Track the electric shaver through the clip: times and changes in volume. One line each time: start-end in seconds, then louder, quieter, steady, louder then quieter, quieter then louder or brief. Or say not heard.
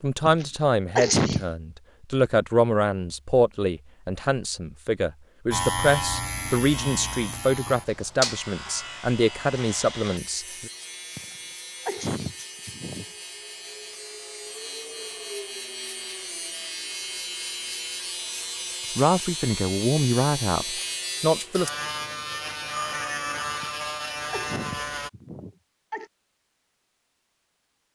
5.5-25.1 quieter then louder.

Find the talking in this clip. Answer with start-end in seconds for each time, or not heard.
0.0-10.7, 18.9-21.7.